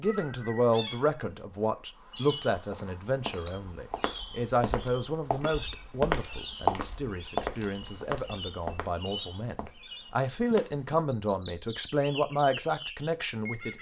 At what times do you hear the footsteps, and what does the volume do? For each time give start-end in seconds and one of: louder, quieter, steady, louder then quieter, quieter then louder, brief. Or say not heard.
2.7-9.7 louder then quieter.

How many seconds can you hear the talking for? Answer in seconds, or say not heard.
14 s.